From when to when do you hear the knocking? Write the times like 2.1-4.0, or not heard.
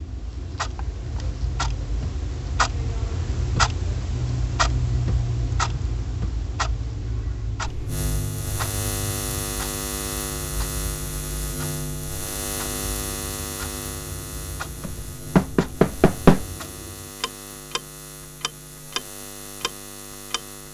14.8-16.4.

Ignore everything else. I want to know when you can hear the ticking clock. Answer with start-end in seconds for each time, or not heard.
0.0-20.6.